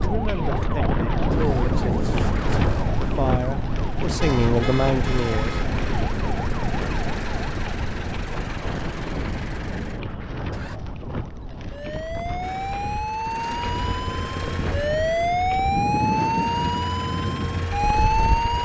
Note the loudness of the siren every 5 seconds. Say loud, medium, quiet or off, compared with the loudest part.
medium, medium, medium, loud.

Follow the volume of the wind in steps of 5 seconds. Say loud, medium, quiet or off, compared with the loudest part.
loud, medium, medium, loud.